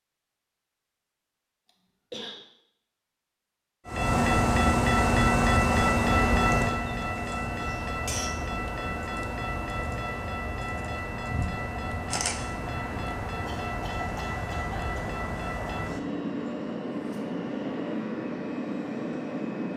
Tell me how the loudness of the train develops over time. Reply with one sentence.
The loudness of the train goes down.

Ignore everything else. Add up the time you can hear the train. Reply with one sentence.
The train can be heard for 16 seconds in total.